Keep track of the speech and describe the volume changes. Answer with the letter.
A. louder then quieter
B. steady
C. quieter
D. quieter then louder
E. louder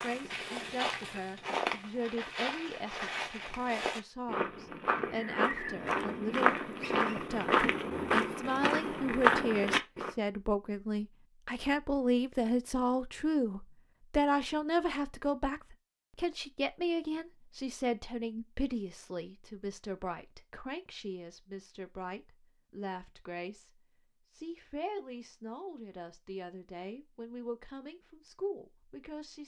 A.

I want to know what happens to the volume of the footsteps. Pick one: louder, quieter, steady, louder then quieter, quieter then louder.
louder.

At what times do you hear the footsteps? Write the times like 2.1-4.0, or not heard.
0.0-10.1.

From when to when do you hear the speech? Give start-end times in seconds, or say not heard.
0.0-29.4.